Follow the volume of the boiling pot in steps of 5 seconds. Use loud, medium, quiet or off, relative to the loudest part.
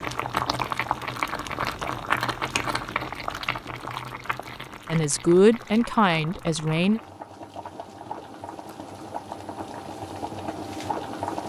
loud, medium, loud.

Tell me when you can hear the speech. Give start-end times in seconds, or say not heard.
4.9-7.0.